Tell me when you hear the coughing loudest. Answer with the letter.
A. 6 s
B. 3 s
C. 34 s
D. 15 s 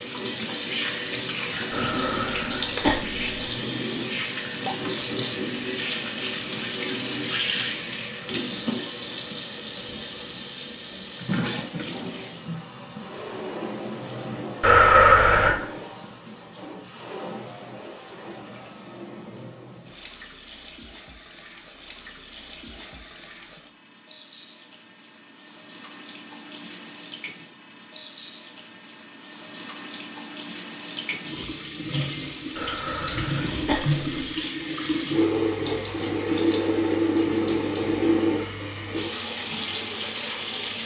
D.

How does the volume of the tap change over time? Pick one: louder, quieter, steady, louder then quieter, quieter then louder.
quieter then louder.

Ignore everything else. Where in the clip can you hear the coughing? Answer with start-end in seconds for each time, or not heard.
1.7-3.3, 14.6-15.6, 32.5-34.0.